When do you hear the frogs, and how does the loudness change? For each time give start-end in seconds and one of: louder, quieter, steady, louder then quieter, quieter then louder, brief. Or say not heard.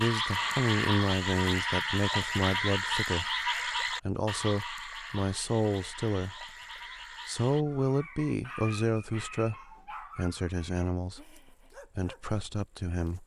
0.0-7.7 quieter.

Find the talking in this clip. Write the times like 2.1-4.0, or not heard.
0.0-6.5, 7.2-13.2.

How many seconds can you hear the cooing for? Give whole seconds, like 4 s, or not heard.
not heard.